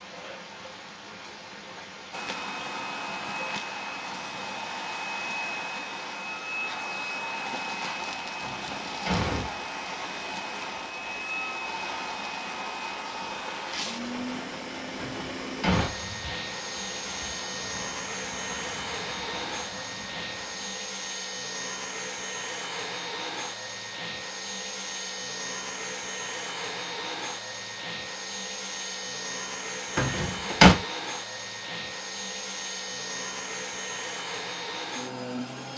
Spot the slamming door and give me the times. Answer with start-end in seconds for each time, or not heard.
8.4-9.5, 14.9-15.9, 29.9-30.8.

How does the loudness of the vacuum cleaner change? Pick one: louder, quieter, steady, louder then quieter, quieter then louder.
steady.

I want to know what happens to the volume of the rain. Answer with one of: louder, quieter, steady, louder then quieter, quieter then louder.
steady.